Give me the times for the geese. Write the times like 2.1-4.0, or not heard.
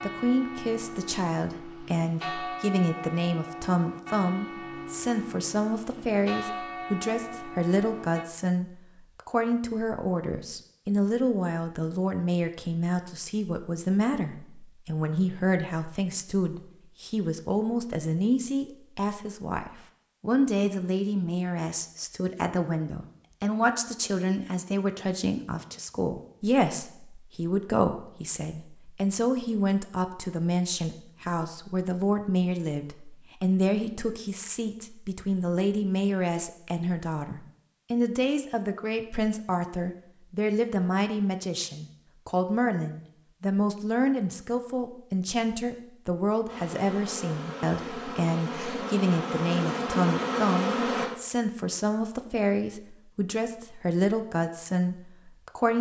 not heard.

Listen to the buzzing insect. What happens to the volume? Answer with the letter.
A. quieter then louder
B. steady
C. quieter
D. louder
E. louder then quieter
D.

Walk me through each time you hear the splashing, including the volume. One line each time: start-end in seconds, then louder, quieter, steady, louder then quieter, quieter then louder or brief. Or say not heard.
not heard.